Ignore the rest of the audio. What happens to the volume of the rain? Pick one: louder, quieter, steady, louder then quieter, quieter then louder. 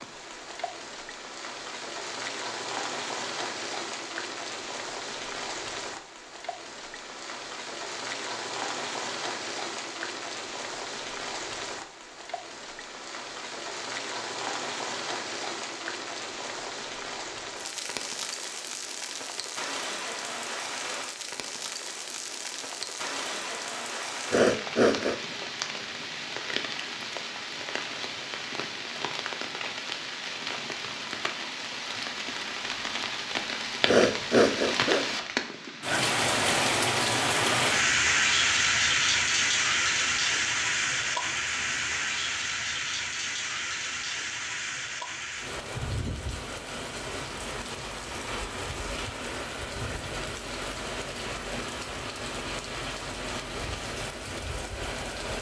louder then quieter.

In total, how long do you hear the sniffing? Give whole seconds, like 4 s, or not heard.
2 s.